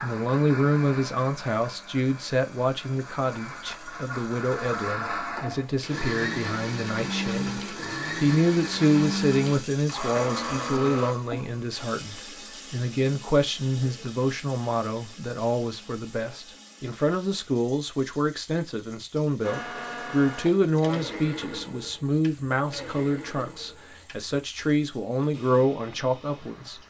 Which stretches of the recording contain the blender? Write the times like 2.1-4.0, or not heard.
0.0-11.2, 19.4-26.8.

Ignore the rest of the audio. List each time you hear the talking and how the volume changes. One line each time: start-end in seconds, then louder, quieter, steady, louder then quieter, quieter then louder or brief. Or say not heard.
0.0-26.8 steady.